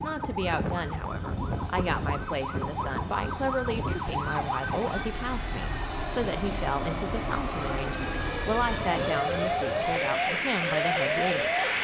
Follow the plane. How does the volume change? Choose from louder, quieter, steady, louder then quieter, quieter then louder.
louder.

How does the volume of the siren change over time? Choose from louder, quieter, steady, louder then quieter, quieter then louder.
quieter then louder.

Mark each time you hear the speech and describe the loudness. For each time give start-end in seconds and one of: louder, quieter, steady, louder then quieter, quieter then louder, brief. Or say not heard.
0.0-11.5 steady.